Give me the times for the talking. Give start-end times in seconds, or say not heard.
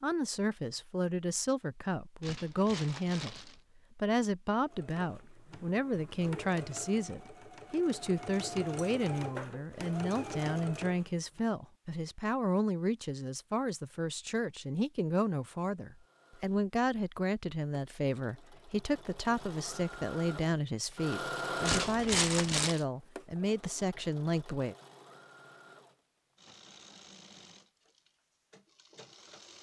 0.0-24.8.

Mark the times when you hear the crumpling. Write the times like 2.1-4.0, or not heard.
2.2-3.6, 21.6-22.9.